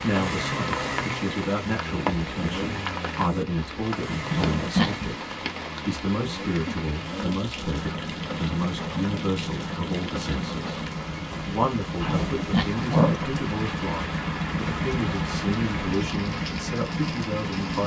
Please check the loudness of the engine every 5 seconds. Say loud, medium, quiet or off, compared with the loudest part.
loud, medium, loud, loud.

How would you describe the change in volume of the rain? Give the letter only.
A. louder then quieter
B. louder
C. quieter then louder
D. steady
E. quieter
D.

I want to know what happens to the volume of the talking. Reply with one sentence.
The loudness of the talking stays about the same.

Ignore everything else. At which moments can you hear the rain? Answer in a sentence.
The rain can be heard from 0.0 to 17.8 s.